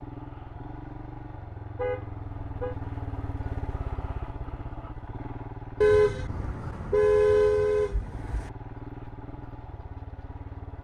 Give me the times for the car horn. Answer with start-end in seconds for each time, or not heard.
1.8-2.8, 5.8-8.5.